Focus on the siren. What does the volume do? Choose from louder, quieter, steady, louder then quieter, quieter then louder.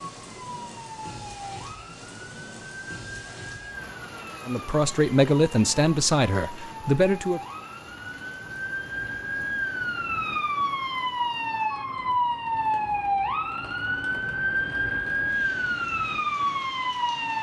louder.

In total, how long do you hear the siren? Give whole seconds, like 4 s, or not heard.
17 s.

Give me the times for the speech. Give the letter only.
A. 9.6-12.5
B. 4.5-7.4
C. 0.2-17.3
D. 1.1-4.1
B.